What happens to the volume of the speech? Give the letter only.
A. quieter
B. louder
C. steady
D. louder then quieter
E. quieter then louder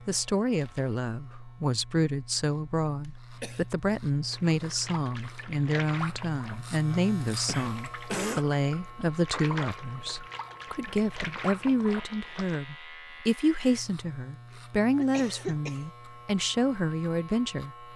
C.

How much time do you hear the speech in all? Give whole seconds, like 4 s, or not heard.
18 s.